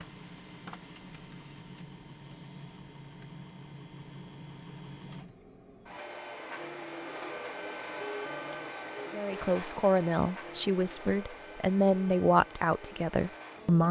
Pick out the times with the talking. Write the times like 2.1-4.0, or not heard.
9.1-13.8.